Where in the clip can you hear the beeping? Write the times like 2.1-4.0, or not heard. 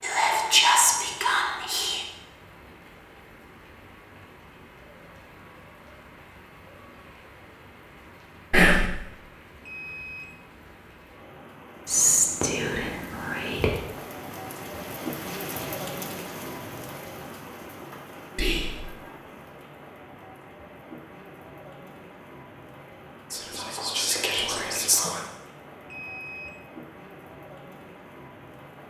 9.6-10.3, 25.9-26.6.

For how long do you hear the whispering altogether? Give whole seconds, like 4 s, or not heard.
7 s.